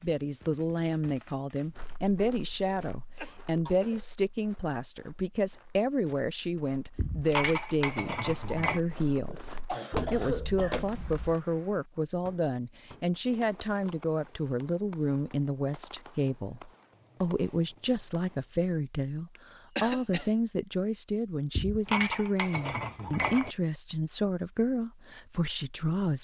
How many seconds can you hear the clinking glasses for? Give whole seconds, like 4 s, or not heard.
4 s.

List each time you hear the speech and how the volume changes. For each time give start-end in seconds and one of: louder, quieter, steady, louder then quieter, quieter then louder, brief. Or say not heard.
0.0-26.1 steady.